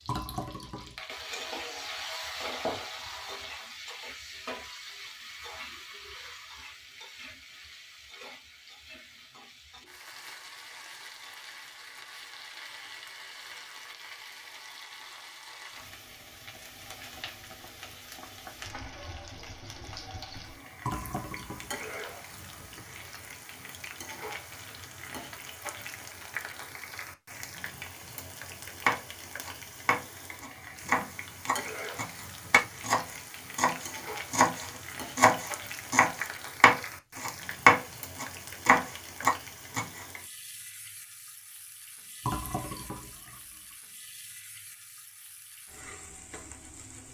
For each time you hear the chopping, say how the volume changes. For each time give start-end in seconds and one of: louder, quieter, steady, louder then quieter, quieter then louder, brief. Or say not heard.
28.9-40.0 louder.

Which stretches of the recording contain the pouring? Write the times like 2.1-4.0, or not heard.
0.1-1.0, 20.8-22.7, 42.2-43.6.